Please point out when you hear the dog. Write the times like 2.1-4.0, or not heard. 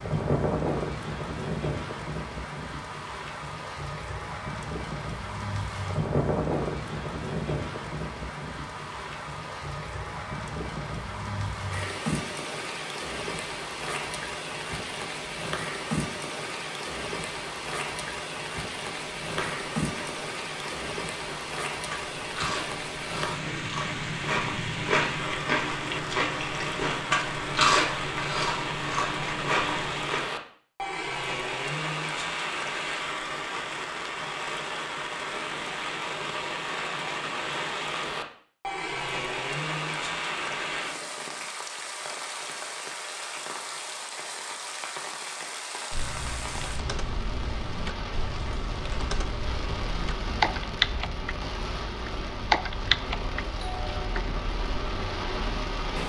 not heard.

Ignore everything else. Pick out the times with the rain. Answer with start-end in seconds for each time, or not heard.
0.0-56.0.